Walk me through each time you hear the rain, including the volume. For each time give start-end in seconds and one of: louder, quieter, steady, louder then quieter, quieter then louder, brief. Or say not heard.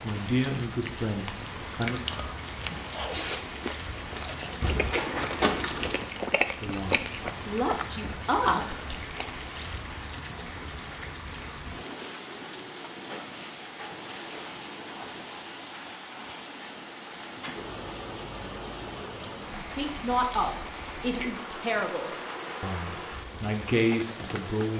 0.0-24.7 steady.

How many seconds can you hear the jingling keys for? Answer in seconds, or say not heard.
3 s.